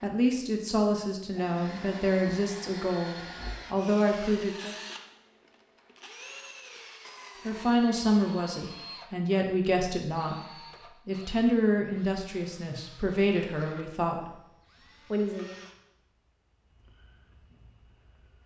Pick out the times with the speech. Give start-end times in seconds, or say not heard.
0.0-4.8, 7.5-14.3, 15.1-15.6.